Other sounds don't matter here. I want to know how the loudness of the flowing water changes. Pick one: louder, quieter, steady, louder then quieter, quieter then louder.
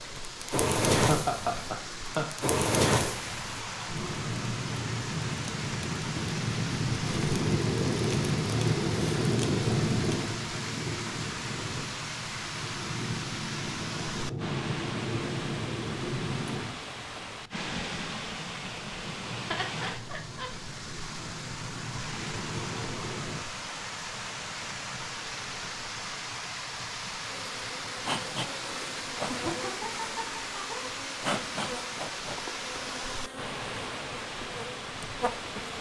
steady.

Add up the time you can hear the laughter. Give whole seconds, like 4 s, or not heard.
4 s.